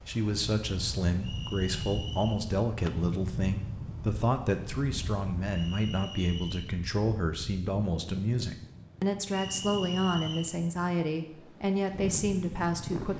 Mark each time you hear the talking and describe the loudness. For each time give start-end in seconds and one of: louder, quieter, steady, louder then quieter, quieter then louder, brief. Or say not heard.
0.1-13.1 steady.